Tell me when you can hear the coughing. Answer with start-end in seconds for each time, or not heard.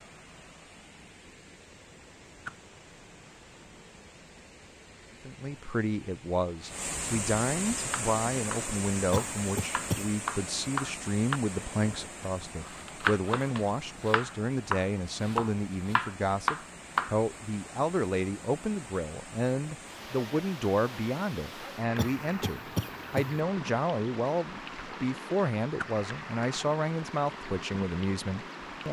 9.1-10.1, 21.9-23.4.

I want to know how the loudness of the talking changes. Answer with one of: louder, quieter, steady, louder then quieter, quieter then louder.
steady.